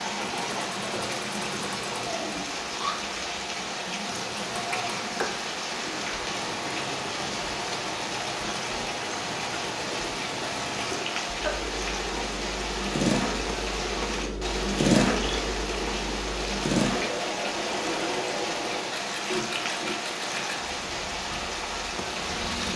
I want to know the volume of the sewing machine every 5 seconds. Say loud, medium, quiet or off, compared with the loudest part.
medium, medium, loud, loud, medium.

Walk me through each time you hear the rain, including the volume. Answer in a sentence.
The rain can be heard from 0.0 to 22.7 s, at a steady volume.